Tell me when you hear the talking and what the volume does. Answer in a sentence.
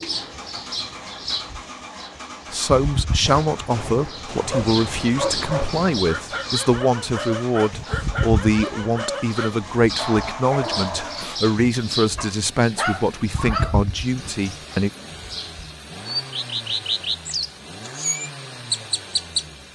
You can hear the talking from 2.5 to 14.9 s, at a steady volume.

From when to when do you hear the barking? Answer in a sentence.
You can hear the barking from 4.3 to 14.8 s.